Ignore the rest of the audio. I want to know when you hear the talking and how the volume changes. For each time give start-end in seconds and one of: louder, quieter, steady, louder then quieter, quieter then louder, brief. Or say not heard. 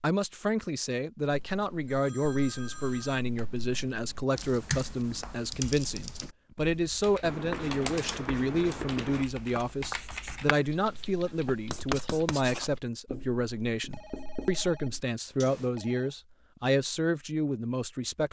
0.0-18.2 steady.